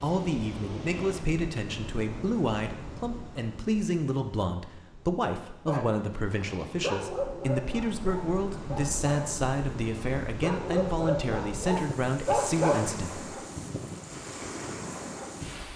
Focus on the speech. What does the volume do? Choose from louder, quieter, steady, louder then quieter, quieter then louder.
steady.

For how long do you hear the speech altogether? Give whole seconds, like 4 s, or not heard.
13 s.